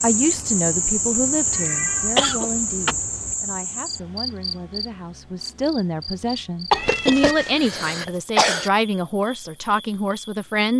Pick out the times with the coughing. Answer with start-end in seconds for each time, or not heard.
2.1-3.0, 6.7-8.7.